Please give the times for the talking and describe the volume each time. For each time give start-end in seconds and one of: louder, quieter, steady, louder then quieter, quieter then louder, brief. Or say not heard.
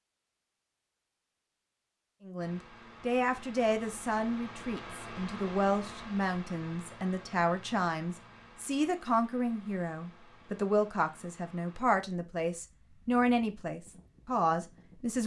2.2-15.2 steady.